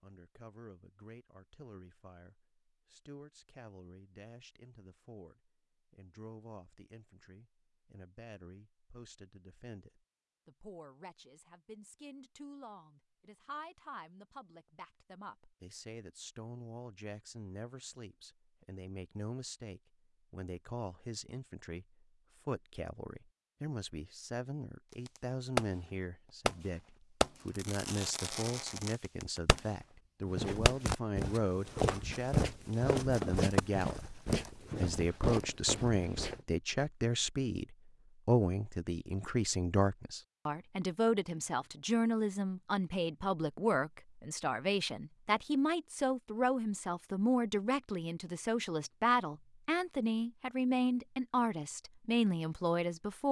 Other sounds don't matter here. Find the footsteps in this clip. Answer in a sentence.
You can hear the footsteps from 30.2 to 36.5 s.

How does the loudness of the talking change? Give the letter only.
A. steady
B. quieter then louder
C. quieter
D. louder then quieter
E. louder
E.